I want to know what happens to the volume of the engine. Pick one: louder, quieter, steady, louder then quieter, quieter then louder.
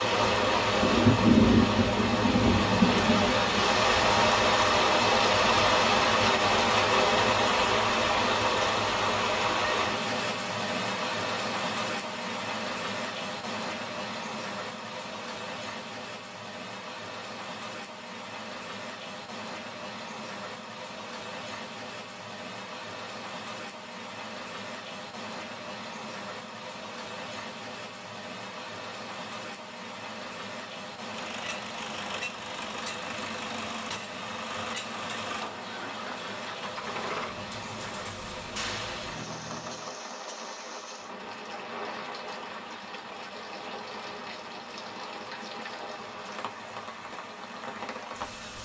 steady.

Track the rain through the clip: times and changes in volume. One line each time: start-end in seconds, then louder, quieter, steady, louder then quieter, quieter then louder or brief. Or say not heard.
0.0-48.6 quieter.